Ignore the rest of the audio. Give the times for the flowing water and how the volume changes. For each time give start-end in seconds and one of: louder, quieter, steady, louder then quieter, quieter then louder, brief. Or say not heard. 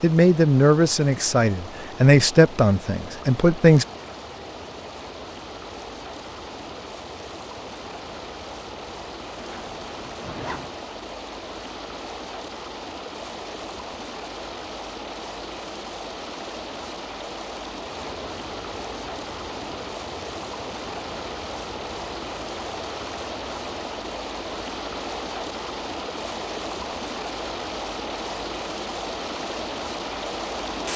0.0-30.9 louder.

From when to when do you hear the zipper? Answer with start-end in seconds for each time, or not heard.
9.3-10.7.